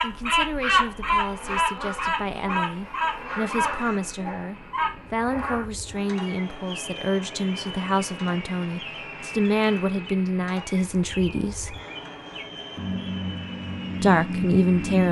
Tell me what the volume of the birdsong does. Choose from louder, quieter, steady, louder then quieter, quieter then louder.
quieter then louder.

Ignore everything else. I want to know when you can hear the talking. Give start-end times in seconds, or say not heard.
0.0-11.8, 14.0-15.0.